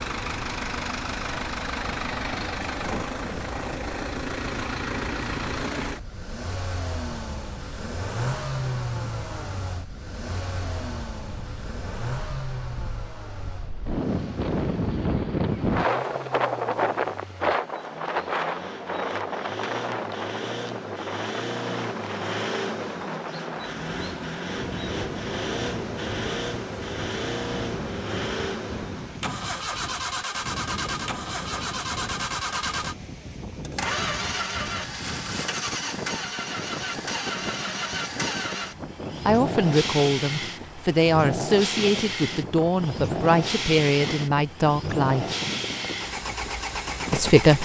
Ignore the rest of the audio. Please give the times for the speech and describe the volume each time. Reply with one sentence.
The speech can be heard from 39.2 to 45.2 s, at a steady volume; and briefly from 47.1 to 47.6 s.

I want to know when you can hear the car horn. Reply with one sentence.
You can't hear the car horn here.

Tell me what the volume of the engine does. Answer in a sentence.
The volume of the engine goes down, then up.